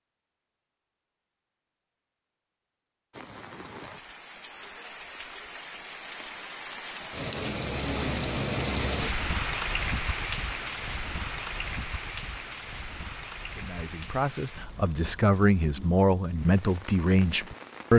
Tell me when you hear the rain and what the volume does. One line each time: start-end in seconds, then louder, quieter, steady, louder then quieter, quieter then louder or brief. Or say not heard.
3.1-17.9 louder then quieter.